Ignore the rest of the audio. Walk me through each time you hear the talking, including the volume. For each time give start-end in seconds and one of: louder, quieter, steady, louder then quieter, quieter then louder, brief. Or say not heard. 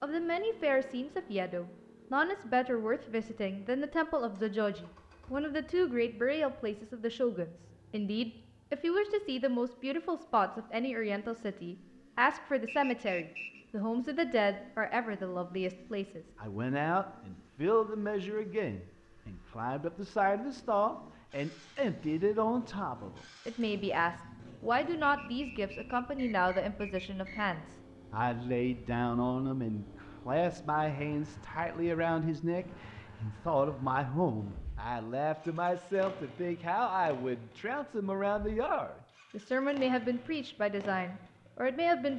0.0-42.1 steady.